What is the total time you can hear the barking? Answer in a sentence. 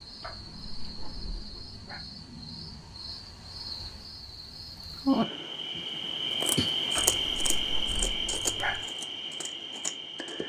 The barking can be heard for 4 seconds in total.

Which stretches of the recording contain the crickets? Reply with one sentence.
The crickets can be heard from 0.0 to 10.4 s.